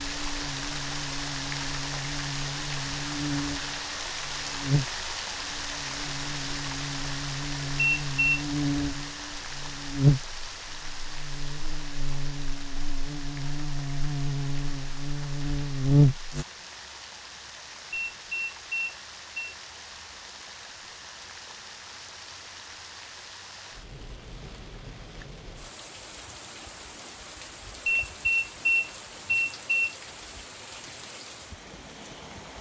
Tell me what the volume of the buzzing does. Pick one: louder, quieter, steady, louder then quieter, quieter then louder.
louder.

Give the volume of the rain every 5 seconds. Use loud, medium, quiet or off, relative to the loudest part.
loud, loud, medium, medium, medium, medium, medium.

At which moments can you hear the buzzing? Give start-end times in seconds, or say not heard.
0.0-16.4.